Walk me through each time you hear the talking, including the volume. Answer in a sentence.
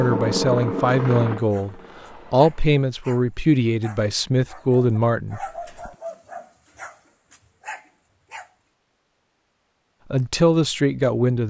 You can hear the talking from 0.0 to 5.9 s, at a steady volume; and briefly from 10.1 to 11.4 s.